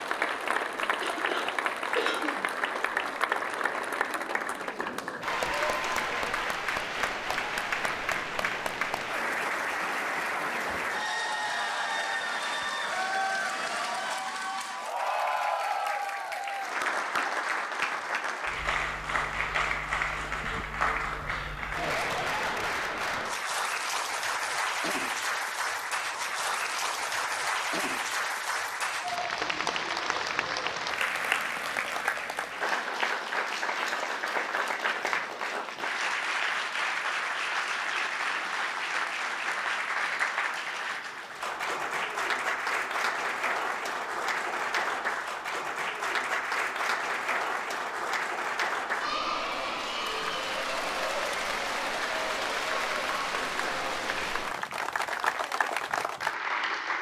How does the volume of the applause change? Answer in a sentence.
The loudness of the applause stays about the same.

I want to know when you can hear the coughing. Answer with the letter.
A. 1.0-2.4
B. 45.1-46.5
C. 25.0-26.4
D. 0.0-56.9
A.